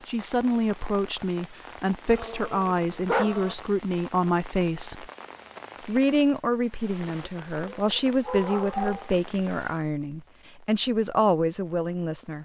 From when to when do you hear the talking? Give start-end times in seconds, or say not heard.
0.1-5.0, 5.8-12.4.